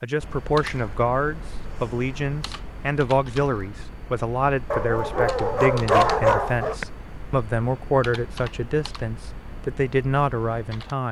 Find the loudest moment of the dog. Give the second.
6 s.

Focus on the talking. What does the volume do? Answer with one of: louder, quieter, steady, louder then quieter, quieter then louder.
steady.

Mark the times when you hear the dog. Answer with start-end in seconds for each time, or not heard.
4.7-6.8.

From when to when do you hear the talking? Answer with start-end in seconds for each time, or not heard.
0.0-11.0.